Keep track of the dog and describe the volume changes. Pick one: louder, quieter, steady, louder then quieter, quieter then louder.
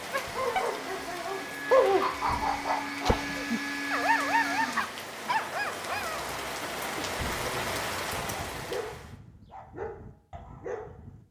quieter.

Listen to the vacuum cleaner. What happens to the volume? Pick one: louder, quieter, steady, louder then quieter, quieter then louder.
louder.